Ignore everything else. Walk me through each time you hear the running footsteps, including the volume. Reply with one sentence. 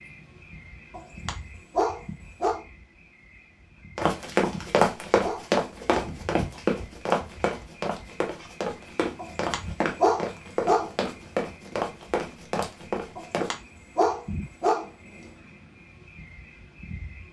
You can hear the running footsteps from 4.0 to 13.5 s, getting quieter.